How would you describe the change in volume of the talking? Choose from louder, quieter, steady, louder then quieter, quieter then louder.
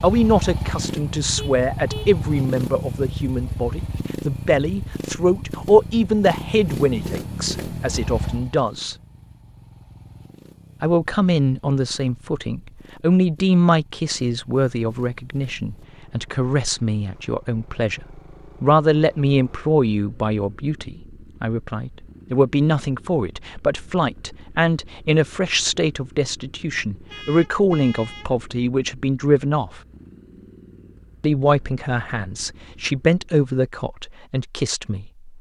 steady.